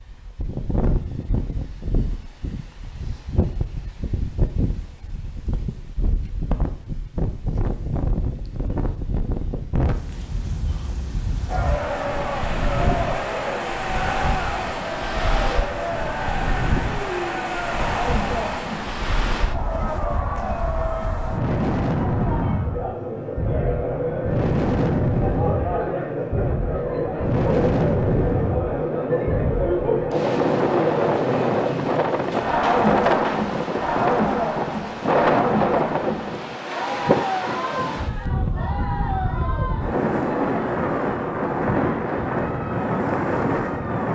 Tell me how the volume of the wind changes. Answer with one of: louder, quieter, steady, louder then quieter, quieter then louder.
louder.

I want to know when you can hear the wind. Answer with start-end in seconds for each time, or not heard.
0.0-44.1.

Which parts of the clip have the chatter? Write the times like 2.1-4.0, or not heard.
11.4-44.1.